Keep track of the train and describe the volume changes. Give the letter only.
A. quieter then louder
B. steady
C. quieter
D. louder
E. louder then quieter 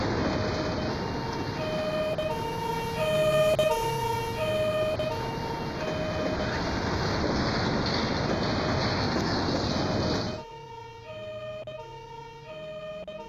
A.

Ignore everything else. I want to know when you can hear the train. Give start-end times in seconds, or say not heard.
0.0-10.4.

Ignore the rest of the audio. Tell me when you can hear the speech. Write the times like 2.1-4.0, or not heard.
not heard.